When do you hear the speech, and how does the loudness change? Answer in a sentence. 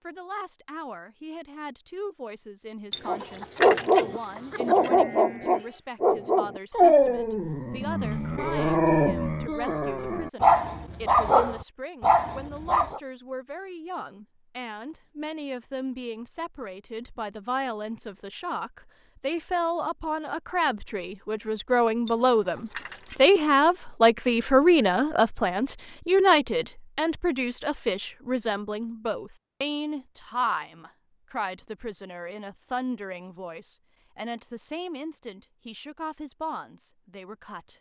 You can hear the speech from 0.0 to 37.7 s, getting louder then quieter.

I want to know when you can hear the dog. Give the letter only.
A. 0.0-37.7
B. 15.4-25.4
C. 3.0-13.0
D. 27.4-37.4
C.